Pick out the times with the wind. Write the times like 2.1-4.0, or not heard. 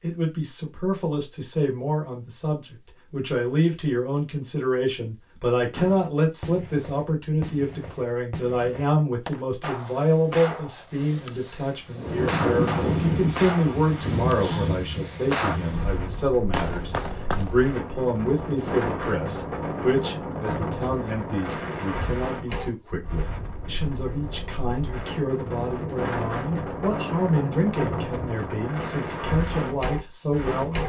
11.9-30.8.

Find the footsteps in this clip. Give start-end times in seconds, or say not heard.
not heard.